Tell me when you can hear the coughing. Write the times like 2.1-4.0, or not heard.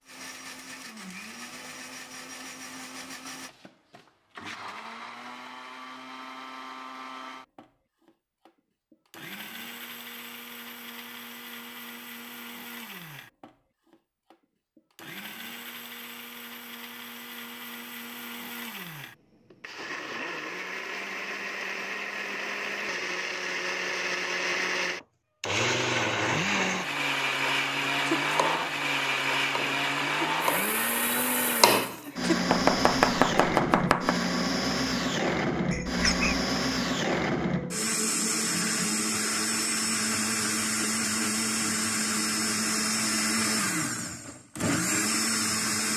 35.7-36.5.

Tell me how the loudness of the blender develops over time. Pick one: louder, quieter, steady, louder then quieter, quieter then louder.
louder.